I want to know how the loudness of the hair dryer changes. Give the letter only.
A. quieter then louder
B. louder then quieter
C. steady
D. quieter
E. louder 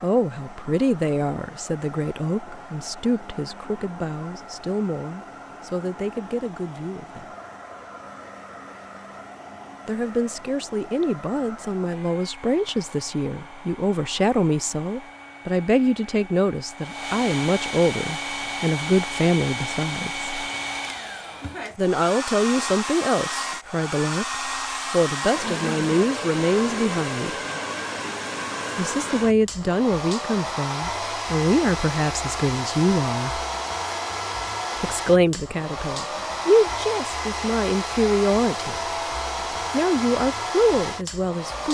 E.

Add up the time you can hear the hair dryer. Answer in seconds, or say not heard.
42 s.